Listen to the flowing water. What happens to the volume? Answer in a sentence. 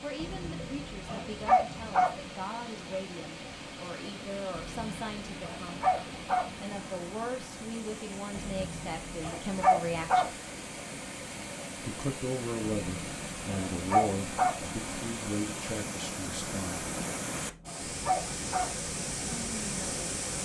The loudness of the flowing water goes up.